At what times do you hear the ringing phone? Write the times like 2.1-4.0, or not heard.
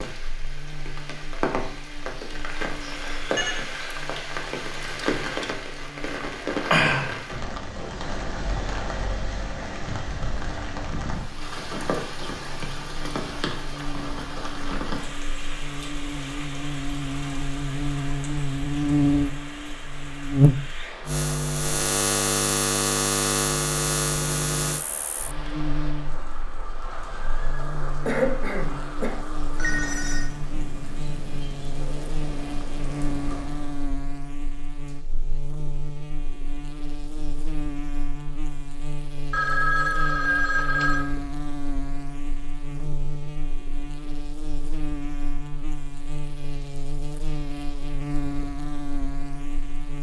2.8-3.6, 29.6-30.3, 39.3-41.1.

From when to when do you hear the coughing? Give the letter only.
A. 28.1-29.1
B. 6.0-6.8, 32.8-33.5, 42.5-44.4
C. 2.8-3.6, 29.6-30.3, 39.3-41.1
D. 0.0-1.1
A.